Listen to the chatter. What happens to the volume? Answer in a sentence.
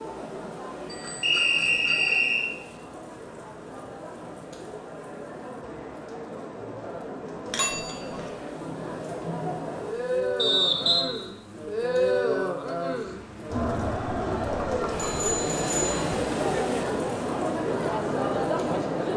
The loudness of the chatter goes up.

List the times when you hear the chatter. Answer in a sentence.
The chatter can be heard from 0.0 to 19.1 s.